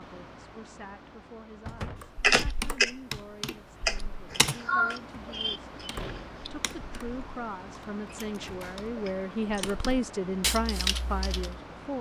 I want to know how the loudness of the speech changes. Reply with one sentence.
The loudness of the speech goes up.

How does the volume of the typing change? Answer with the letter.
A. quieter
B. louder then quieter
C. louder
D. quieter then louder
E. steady
D.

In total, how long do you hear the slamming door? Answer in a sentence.
The slamming door can be heard for 2 seconds in total.